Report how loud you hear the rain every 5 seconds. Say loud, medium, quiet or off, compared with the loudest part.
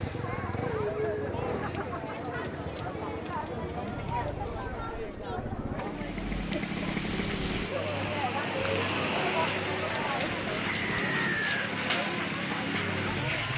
off, loud, loud.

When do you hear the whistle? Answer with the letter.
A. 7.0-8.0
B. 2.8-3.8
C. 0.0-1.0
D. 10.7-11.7
D.